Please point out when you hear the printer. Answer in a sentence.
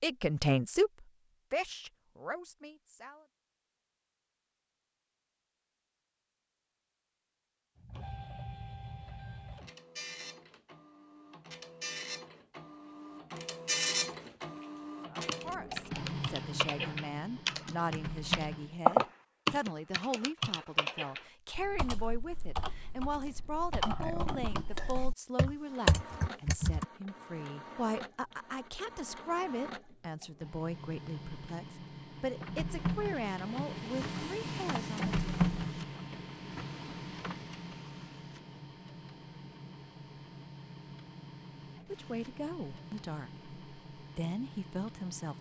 You can hear the printer from 7.8 to 18.8 s and from 25.6 to 45.3 s.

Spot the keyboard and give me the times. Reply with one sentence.
The keyboard can be heard from 15.2 to 26.9 s.